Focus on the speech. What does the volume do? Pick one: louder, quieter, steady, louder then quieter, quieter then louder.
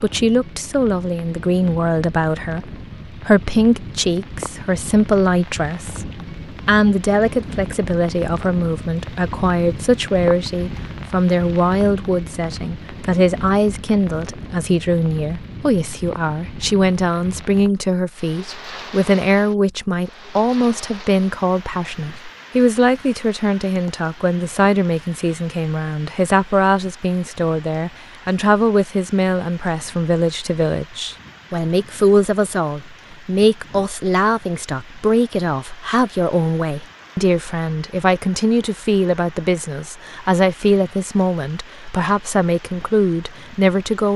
steady.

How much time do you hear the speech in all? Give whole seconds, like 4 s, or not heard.
44 s.